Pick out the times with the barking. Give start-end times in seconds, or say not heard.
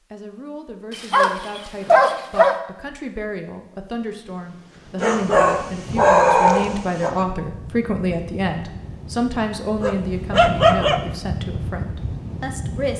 0.9-2.5, 5.0-7.1, 9.8-11.0.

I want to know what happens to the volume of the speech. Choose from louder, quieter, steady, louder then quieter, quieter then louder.
louder then quieter.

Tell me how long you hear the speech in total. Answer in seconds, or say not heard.
13 s.